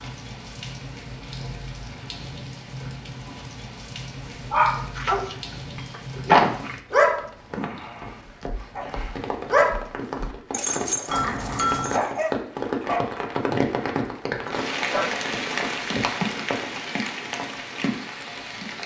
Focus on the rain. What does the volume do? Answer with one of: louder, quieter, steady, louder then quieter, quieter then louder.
louder.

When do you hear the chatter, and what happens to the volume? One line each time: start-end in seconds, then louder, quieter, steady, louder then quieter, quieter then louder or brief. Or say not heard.
not heard.